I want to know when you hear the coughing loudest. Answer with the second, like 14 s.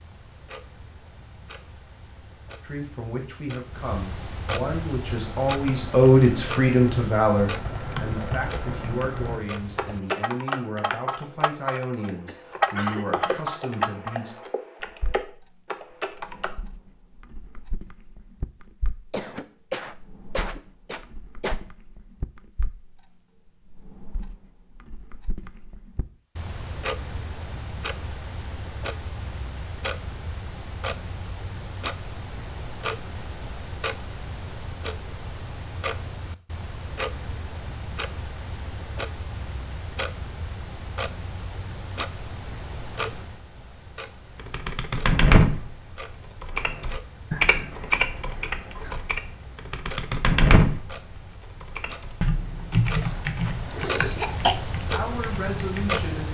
54 s.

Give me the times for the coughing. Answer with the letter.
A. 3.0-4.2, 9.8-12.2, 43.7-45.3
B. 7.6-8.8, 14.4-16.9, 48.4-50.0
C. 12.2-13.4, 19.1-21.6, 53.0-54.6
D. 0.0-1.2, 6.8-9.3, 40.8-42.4
C.